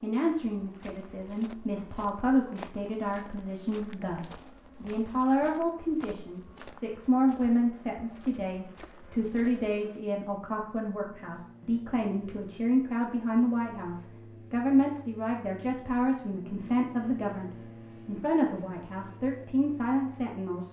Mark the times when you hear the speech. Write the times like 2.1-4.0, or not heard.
0.0-20.6.